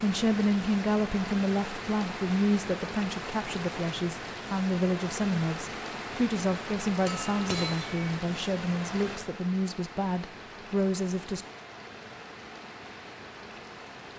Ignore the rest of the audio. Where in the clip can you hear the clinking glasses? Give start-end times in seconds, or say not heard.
7.0-8.1.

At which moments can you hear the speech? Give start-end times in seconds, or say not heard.
0.0-11.4.